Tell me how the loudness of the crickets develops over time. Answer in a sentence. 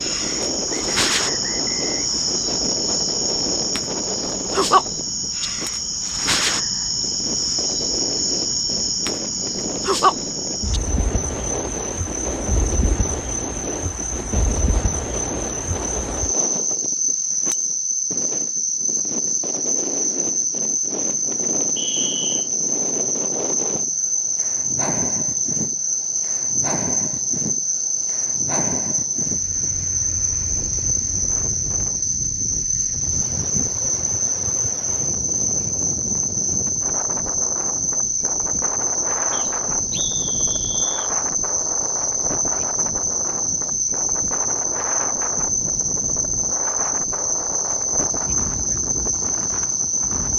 The loudness of the crickets stays about the same.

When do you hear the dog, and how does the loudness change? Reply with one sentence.
You can't hear the dog here.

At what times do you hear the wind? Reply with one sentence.
The wind can be heard from 0.0 to 50.3 s.